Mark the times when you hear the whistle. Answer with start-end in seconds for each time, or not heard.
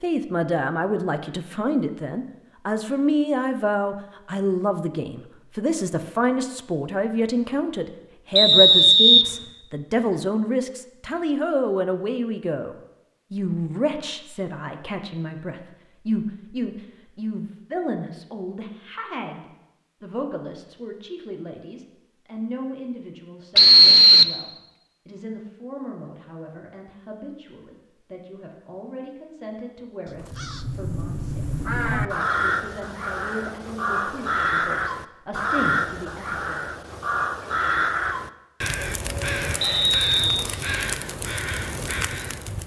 8.3-9.2, 23.6-24.4, 39.6-40.5.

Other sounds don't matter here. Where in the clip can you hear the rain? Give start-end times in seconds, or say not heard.
not heard.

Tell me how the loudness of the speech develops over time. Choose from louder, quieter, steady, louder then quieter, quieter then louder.
quieter.